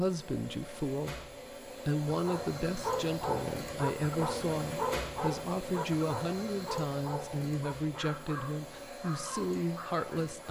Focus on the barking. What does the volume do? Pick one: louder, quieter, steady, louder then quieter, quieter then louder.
quieter.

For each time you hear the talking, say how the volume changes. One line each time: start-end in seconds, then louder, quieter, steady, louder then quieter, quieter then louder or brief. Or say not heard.
0.0-10.4 steady.